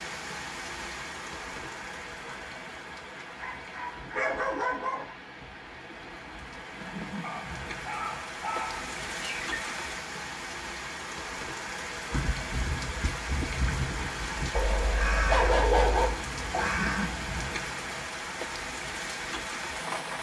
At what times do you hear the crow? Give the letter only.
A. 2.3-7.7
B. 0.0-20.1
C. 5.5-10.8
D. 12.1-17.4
D.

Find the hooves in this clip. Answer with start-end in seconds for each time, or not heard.
not heard.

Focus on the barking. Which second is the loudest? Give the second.
16 s.